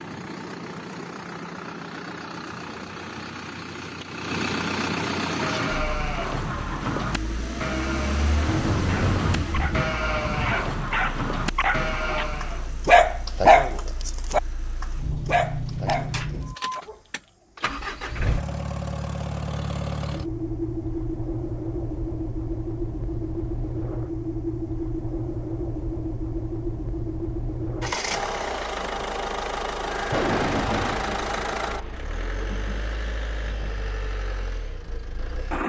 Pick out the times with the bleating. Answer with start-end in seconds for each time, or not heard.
5.2-12.8.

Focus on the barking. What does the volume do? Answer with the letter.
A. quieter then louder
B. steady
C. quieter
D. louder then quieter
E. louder
D.